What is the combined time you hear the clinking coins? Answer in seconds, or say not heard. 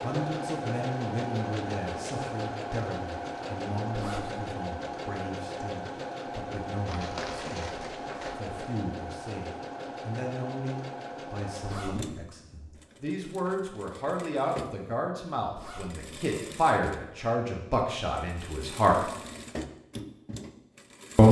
2 s.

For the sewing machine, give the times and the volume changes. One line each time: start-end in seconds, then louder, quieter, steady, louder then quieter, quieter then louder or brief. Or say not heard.
0.0-21.2 quieter.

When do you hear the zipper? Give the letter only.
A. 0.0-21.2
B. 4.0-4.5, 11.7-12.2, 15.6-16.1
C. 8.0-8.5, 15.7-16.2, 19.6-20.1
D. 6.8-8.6
B.